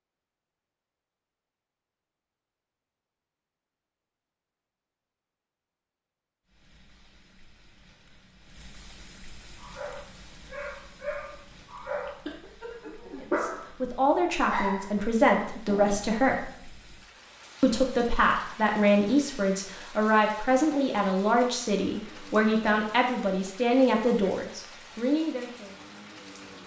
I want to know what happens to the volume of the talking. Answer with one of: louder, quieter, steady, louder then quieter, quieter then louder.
steady.